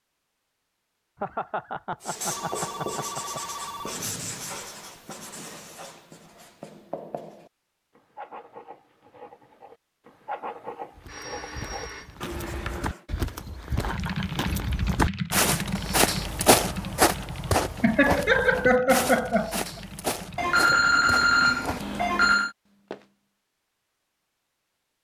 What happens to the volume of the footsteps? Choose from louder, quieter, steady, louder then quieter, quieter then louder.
louder then quieter.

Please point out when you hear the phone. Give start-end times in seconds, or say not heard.
2.2-4.0, 11.1-12.2, 20.4-22.5.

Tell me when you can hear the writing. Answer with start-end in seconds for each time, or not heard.
2.0-13.0.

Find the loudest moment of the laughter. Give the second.
19 s.